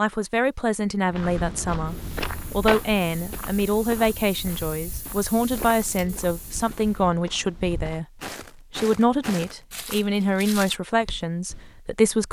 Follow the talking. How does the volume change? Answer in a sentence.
The volume of the talking stays about the same.